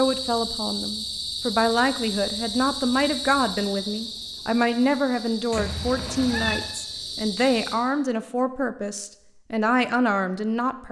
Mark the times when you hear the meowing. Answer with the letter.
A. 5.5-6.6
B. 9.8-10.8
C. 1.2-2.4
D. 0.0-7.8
A.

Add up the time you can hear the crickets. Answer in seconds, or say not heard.
8 s.